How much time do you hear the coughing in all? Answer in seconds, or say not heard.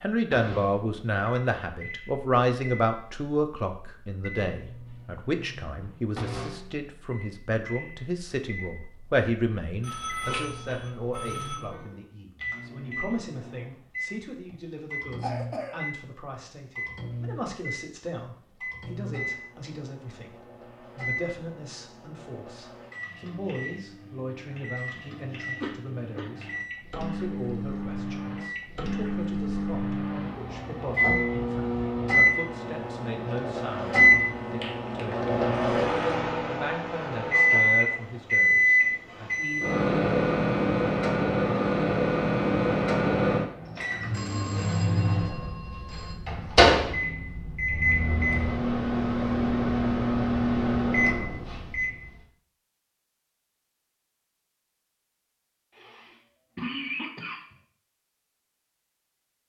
3 s.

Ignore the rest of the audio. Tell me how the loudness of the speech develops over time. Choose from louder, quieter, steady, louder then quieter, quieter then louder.
quieter.